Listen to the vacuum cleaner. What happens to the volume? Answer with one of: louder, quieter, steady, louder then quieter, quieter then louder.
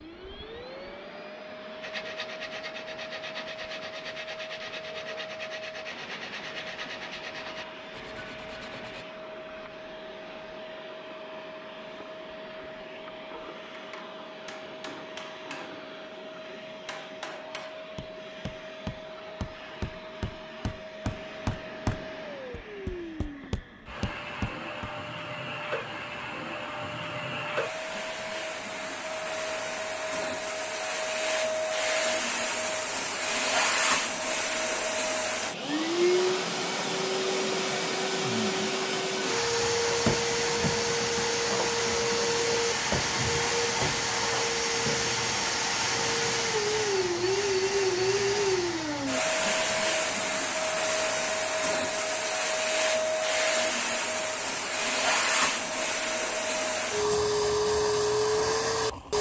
louder.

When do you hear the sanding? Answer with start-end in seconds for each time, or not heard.
1.8-9.1.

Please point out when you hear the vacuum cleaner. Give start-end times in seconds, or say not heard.
0.0-59.1.